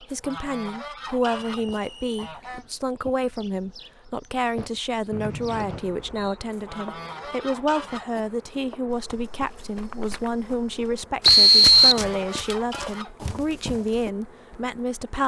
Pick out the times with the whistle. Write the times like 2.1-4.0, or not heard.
1.4-2.4, 5.1-6.4, 11.2-12.0.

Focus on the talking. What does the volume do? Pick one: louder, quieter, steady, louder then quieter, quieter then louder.
steady.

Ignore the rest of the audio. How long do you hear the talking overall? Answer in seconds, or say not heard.
15 s.